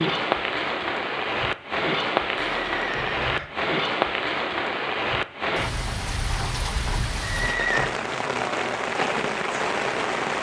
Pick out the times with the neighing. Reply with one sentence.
You can hear the neighing from 2.4 to 3.5 s and from 7.2 to 8.0 s.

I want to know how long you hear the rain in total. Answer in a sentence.
The rain can be heard for 10 seconds in total.